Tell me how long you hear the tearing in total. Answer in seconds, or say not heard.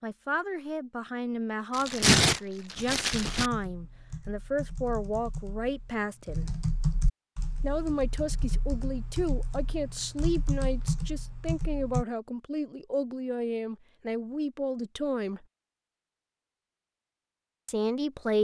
2 s.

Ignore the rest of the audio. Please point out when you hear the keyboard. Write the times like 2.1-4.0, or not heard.
3.1-12.1.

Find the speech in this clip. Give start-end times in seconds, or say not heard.
0.0-6.5, 7.6-15.4, 17.6-18.3.